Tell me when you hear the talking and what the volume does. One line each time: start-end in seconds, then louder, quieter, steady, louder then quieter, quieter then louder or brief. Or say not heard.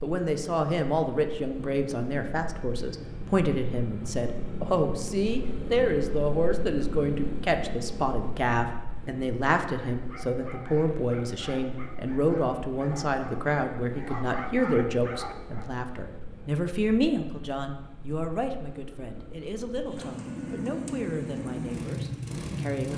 0.0-22.9 quieter.